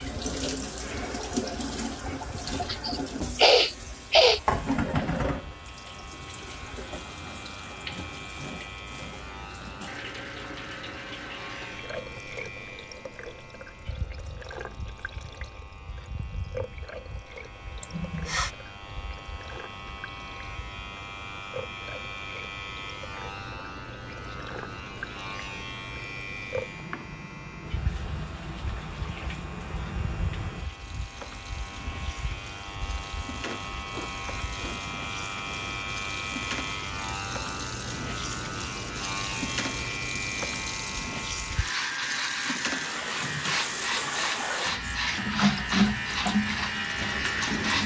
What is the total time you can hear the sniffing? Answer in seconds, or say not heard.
5 s.